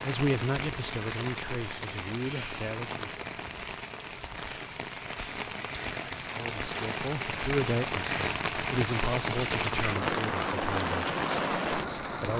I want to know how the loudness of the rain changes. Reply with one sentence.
The volume of the rain goes up.